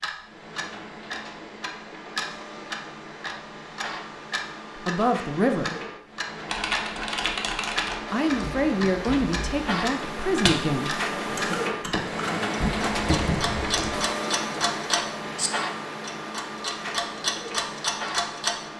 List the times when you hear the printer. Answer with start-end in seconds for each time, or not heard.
0.0-18.7.